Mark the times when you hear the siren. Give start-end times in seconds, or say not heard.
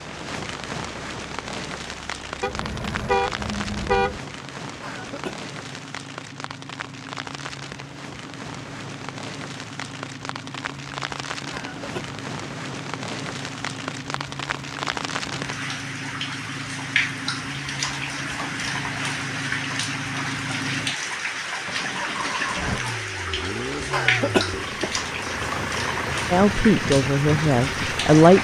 not heard.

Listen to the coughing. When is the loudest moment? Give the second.
24 s.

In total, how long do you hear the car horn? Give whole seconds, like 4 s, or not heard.
2 s.